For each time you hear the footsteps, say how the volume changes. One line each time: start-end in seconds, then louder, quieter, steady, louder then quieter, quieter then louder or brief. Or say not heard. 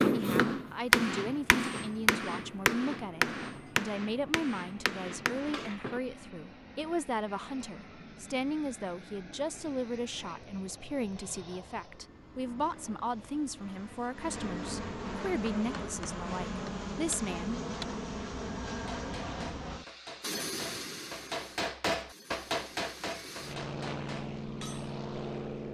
not heard.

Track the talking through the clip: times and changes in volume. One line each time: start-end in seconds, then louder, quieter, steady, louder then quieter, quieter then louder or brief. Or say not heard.
0.0-17.6 steady.